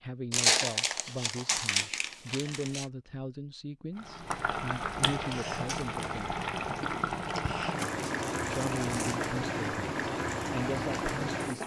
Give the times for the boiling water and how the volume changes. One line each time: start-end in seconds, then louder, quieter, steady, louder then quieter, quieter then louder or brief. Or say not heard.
4.0-11.6 steady.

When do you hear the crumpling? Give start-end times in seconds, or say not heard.
0.3-2.9, 7.8-9.2.